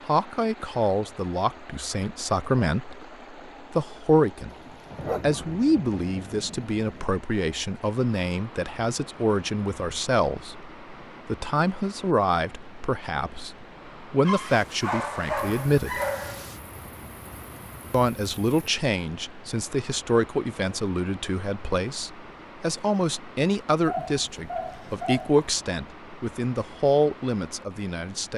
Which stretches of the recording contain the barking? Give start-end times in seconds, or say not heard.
5.0-5.4, 14.2-16.6, 23.9-25.4.